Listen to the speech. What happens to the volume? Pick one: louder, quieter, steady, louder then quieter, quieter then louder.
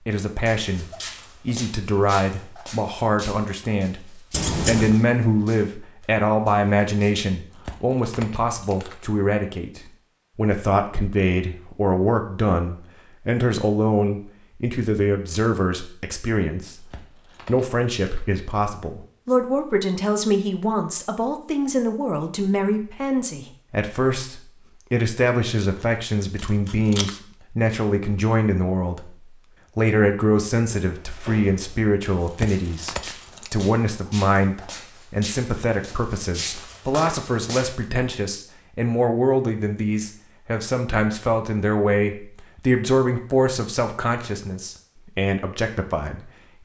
steady.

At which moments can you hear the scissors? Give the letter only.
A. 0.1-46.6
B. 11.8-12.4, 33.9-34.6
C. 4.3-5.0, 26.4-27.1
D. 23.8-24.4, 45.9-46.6
C.